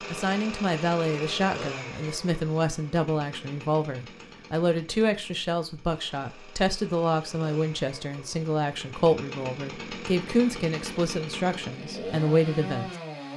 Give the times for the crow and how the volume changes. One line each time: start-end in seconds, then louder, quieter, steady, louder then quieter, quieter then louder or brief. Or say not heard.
not heard.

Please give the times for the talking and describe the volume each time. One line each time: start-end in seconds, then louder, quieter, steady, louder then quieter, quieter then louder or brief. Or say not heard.
0.1-12.9 steady.